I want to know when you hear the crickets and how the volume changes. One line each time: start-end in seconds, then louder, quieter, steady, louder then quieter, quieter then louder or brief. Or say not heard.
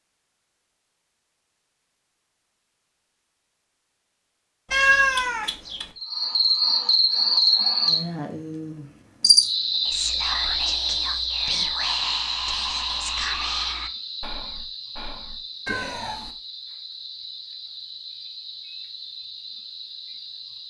6.0-20.6 quieter.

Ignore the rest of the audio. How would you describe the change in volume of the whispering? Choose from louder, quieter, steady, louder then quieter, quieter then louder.
quieter.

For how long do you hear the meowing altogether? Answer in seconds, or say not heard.
2 s.